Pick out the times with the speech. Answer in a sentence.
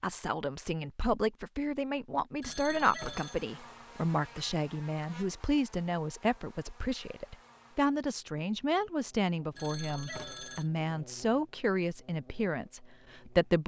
The speech can be heard from 0.0 to 13.6 s.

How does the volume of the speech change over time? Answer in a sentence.
The loudness of the speech stays about the same.